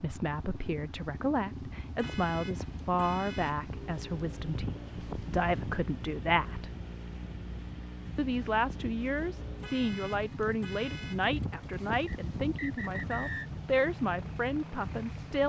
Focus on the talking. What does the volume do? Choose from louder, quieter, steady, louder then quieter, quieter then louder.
steady.